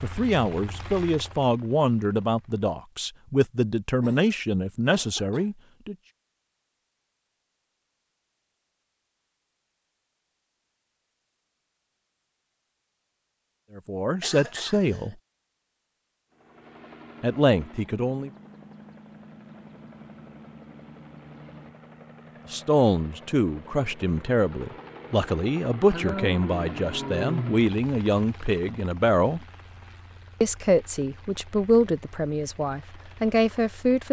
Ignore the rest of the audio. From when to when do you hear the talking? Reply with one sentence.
The talking can be heard from 0.0 to 6.0 s, from 13.8 to 15.2 s, from 17.2 to 18.3 s, from 22.5 to 29.4 s and from 30.4 to 34.0 s.